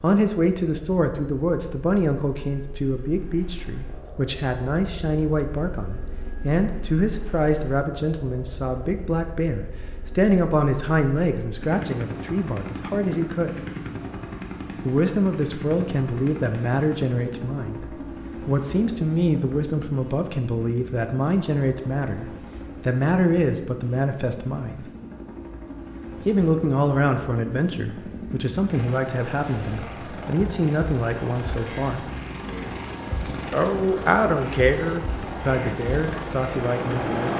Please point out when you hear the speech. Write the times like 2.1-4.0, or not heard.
0.0-13.6, 14.8-24.9, 26.2-32.0, 33.5-37.3.